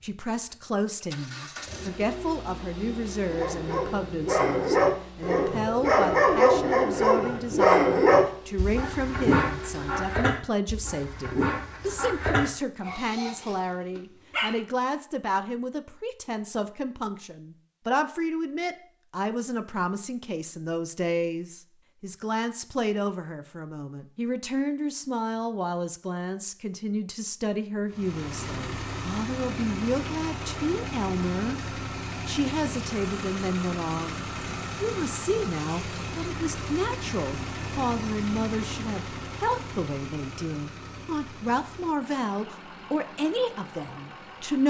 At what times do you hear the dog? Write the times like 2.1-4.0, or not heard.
3.2-14.6.